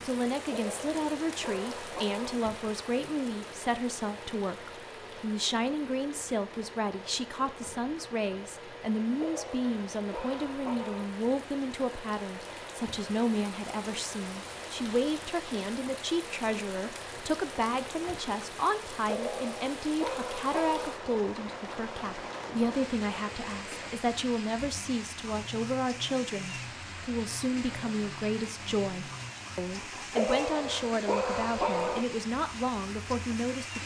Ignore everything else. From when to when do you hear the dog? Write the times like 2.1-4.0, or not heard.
0.5-2.4, 9.2-11.1, 19.1-20.9, 30.1-32.0.